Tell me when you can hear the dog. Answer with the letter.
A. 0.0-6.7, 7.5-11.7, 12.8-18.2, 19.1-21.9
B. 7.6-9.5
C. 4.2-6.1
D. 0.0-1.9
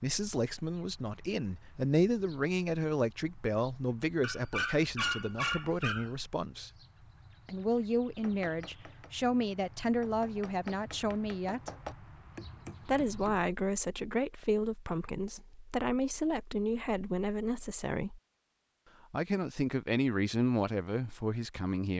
C.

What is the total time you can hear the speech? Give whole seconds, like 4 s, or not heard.
19 s.